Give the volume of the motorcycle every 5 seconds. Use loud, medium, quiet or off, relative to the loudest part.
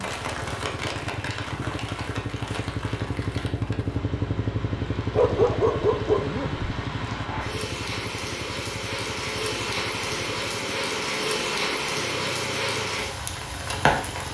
loud, loud, medium.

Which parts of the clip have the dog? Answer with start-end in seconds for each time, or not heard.
5.1-6.7.